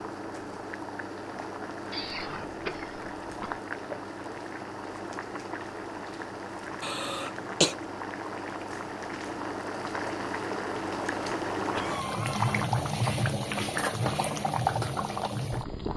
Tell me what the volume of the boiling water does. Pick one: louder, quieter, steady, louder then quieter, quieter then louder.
louder.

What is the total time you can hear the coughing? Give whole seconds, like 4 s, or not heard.
4 s.